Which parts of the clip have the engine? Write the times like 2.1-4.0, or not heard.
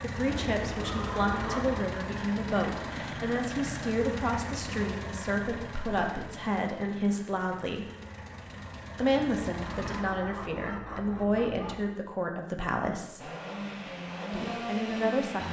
0.0-10.1, 13.2-15.4.